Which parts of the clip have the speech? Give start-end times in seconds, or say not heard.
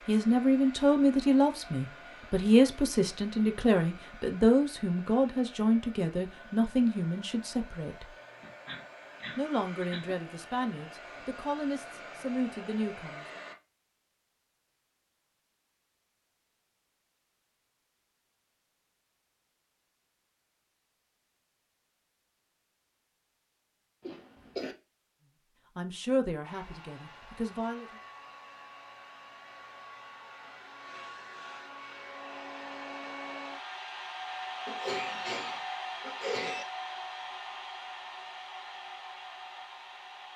0.1-8.1, 9.3-13.4, 25.8-27.9.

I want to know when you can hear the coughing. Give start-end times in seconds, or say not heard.
8.4-10.2, 24.0-24.8, 34.6-36.6.